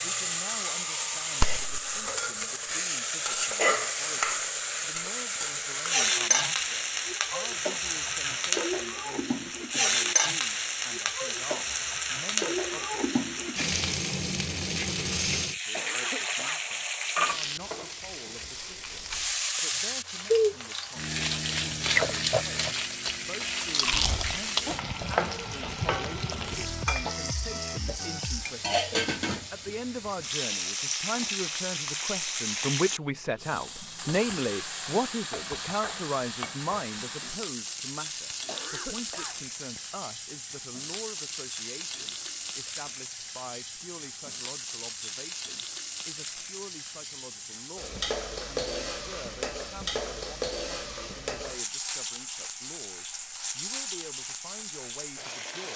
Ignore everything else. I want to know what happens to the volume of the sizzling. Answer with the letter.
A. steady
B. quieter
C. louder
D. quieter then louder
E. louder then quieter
B.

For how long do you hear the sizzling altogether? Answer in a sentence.
The sizzling can be heard for 56 seconds in total.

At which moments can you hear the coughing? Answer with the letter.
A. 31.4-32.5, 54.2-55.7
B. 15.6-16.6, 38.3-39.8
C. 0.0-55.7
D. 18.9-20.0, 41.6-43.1
B.